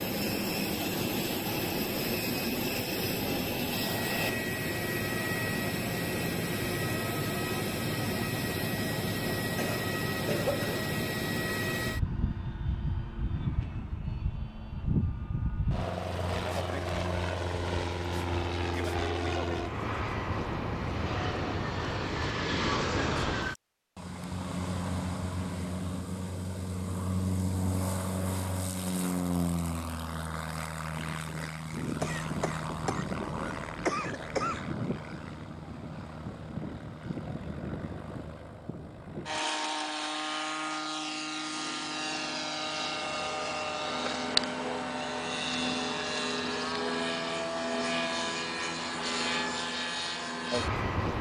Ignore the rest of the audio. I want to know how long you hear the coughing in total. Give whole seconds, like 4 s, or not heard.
4 s.